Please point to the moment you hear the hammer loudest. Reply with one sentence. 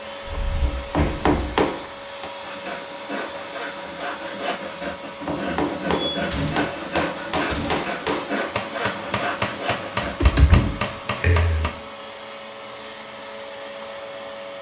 The volume of the hammer peaks at 1 second.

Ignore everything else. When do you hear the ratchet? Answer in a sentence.
The ratchet can't be heard in this clip.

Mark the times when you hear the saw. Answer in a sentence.
The saw can be heard from 2.4 to 10.3 s.